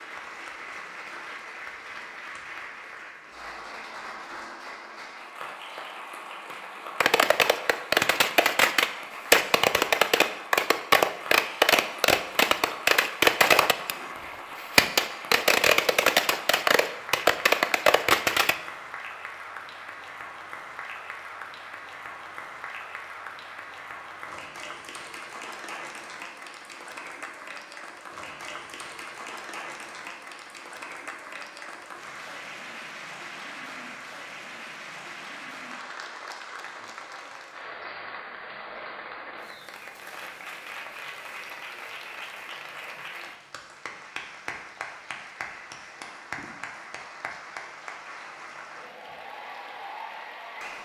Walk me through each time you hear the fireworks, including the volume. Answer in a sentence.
You can hear the fireworks from 7.0 to 18.6 s, at a steady volume.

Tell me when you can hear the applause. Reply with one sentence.
You can hear the applause from 0.0 to 50.8 s.